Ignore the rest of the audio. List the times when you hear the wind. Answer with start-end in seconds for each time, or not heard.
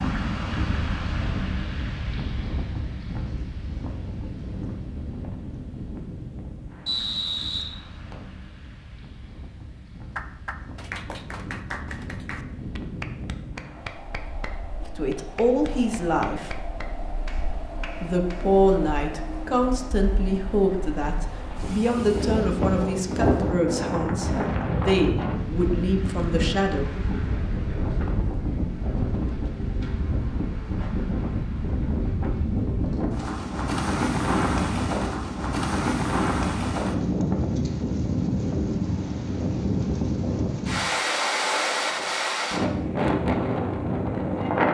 0.0-44.6.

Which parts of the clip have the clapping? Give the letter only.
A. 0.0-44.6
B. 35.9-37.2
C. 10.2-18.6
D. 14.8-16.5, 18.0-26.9
C.